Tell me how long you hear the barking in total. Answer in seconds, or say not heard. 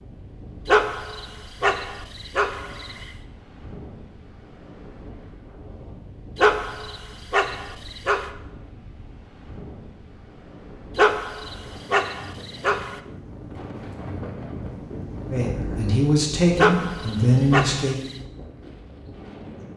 8 s.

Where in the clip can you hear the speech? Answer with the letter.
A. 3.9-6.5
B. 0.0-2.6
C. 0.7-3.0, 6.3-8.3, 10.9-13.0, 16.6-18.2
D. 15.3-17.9
D.